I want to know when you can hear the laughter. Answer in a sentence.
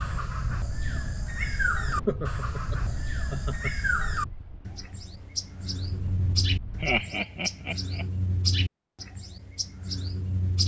You can hear the laughter from 2.0 to 3.8 s and from 6.8 to 8.1 s.